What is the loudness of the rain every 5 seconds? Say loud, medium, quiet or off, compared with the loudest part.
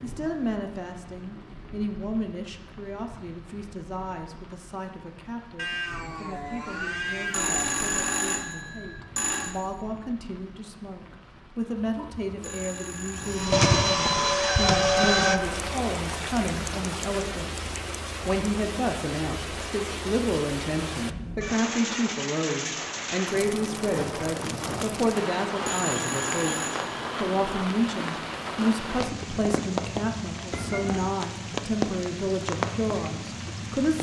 quiet, quiet, quiet, loud, loud, loud, loud.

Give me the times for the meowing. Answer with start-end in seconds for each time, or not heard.
5.5-7.6, 30.5-31.2.